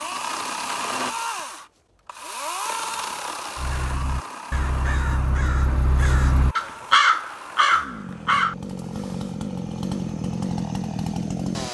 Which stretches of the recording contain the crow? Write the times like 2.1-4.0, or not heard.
3.5-8.6.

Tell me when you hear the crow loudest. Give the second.
7 s.